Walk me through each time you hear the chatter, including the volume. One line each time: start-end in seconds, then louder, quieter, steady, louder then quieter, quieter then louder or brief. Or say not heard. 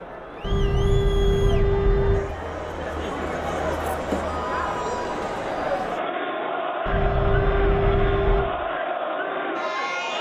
0.0-10.1 louder.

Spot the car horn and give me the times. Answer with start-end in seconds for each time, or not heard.
0.4-2.2, 6.8-8.4.